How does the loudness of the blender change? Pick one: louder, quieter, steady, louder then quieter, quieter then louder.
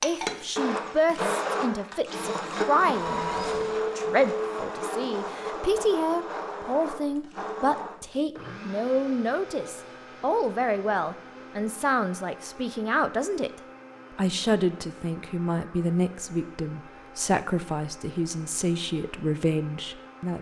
quieter.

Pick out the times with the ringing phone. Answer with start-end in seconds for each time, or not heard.
2.9-3.8.